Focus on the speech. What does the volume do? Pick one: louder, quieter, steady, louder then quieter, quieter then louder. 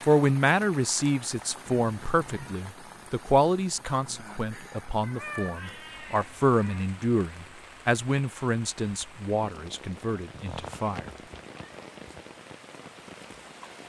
quieter.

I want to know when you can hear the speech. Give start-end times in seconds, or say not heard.
0.0-11.1.